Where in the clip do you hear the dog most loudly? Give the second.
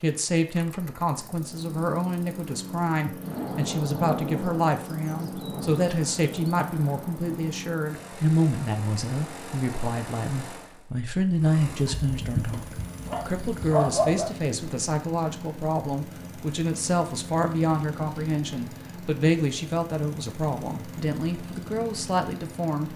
14 s.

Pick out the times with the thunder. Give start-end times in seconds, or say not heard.
3.2-7.5.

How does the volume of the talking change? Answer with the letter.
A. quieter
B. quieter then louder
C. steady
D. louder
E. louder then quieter
C.